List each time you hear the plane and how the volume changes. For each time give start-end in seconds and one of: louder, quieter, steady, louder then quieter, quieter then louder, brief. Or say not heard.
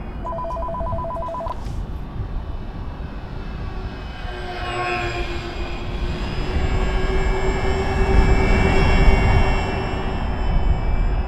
0.0-11.2 louder.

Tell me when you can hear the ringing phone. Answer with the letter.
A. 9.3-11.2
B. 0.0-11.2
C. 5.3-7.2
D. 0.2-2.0
D.